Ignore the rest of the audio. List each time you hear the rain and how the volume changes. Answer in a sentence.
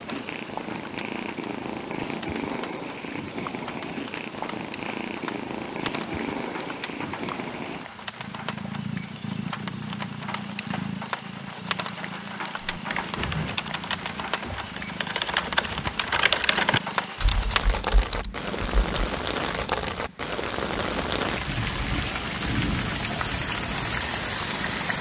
You can hear the rain from 0.0 to 24.9 s, getting louder.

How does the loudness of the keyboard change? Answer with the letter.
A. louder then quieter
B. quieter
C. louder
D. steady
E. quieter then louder
A.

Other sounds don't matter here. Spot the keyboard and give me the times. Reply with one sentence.
You can hear the keyboard from 12.6 to 19.1 s.